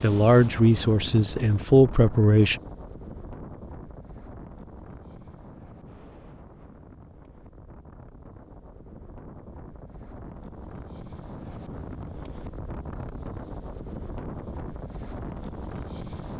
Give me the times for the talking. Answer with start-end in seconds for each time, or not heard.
0.0-2.5.